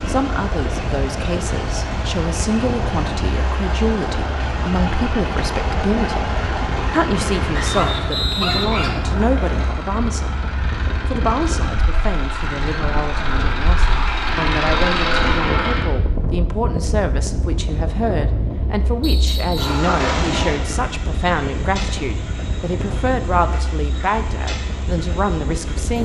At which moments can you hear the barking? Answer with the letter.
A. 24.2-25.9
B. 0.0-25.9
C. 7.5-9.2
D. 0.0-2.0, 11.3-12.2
C.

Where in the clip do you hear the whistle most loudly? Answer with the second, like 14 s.
8 s.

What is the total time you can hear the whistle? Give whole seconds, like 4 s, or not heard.
3 s.